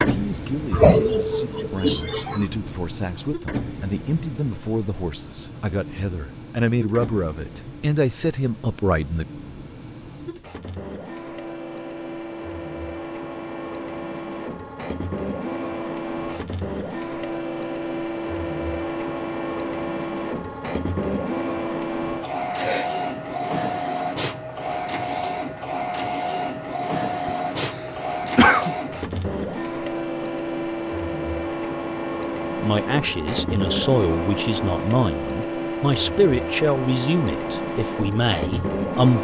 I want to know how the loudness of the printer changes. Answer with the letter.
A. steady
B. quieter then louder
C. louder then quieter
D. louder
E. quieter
D.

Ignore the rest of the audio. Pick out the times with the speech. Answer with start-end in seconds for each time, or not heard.
0.0-9.2, 32.6-39.2.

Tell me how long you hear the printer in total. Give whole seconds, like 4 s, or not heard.
39 s.